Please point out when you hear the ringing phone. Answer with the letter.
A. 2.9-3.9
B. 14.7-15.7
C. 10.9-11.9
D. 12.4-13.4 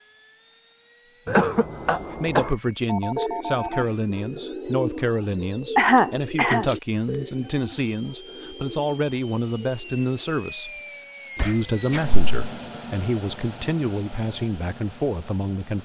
A.